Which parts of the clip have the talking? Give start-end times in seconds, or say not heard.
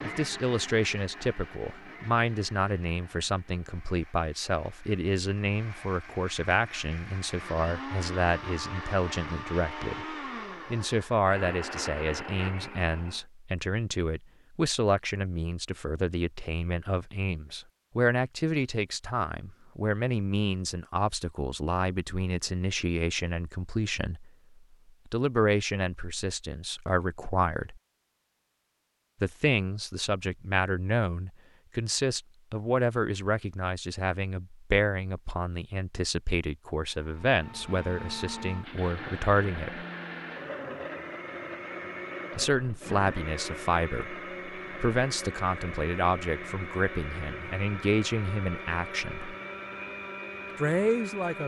0.0-24.3, 25.1-27.8, 29.2-39.9, 42.4-49.4, 50.5-51.4.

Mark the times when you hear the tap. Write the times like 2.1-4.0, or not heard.
not heard.